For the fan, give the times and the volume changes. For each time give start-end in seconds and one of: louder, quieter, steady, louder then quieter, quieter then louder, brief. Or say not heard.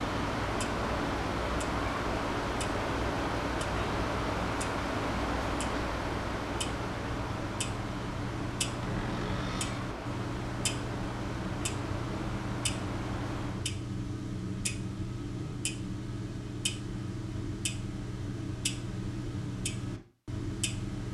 0.0-13.7 quieter.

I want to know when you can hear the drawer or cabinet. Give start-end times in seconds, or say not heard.
8.8-9.9.